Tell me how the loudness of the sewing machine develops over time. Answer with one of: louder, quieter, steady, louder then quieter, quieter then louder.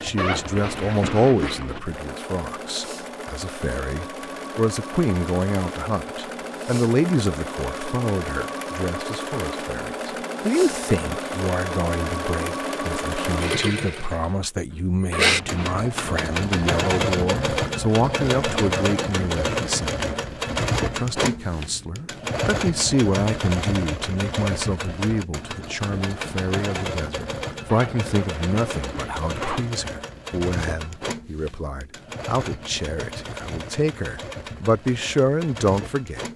louder then quieter.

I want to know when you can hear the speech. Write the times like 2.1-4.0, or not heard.
0.0-20.2, 20.9-36.3.